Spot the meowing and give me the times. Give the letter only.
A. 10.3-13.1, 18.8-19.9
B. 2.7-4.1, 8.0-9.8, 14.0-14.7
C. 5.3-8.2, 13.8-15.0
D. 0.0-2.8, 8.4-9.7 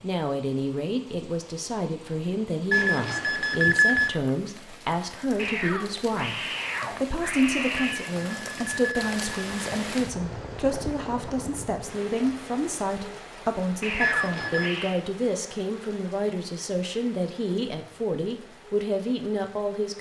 C.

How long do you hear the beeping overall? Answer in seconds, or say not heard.
4 s.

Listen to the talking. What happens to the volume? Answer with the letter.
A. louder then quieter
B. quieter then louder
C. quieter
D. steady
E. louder
D.